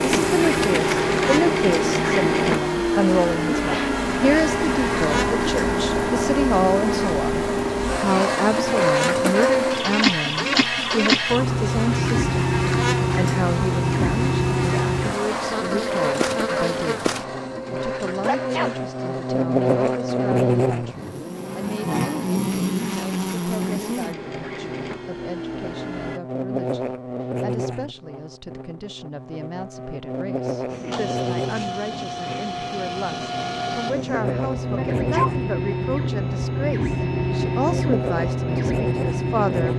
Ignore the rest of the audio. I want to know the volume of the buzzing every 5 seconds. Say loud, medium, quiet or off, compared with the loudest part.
medium, medium, medium, loud, loud, medium, medium, loud.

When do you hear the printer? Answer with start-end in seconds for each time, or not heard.
0.0-26.2, 30.6-39.7.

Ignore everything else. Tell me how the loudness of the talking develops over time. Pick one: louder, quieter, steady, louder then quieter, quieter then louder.
quieter then louder.